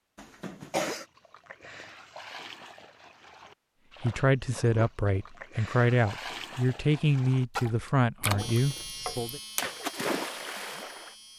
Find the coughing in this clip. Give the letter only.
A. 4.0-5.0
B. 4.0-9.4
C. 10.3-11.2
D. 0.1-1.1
D.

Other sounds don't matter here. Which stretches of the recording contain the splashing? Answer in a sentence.
The splashing can be heard from 0.8 to 11.2 s.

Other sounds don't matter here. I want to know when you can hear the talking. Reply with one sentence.
The talking can be heard from 4.0 to 9.4 s.